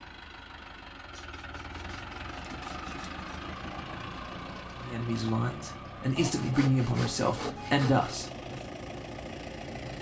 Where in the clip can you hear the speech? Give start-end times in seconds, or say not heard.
4.8-8.6.